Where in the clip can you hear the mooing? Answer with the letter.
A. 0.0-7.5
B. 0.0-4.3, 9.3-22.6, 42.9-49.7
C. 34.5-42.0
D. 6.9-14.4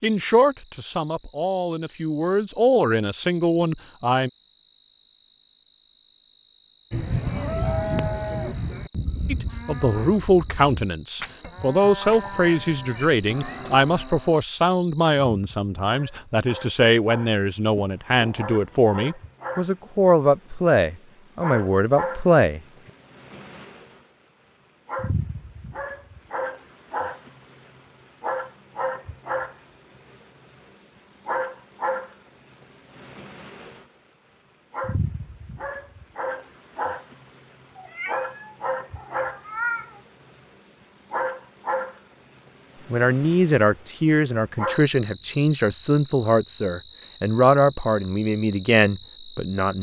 D.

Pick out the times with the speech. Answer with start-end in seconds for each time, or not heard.
0.0-4.3, 9.3-22.6, 42.9-49.7.